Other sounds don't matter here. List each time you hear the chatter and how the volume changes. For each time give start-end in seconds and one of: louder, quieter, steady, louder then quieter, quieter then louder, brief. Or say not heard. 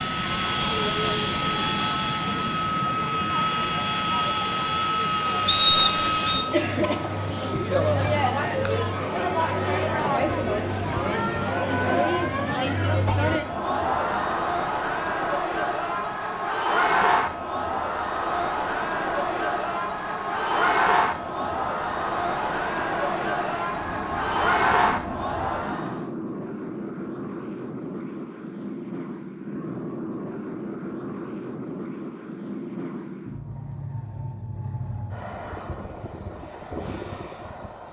0.0-26.1 louder.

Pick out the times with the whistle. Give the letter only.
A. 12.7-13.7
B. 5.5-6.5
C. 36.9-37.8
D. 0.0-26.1
B.